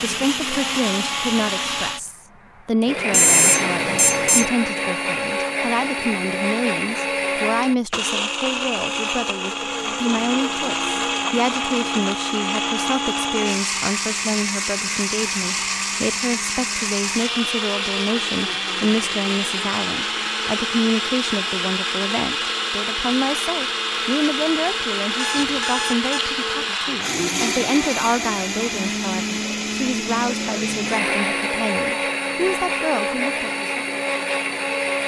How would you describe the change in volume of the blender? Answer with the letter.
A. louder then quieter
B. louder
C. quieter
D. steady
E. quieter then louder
D.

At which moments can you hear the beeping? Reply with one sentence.
You can hear the beeping from 3.1 to 4.5 s and from 25.1 to 26.4 s.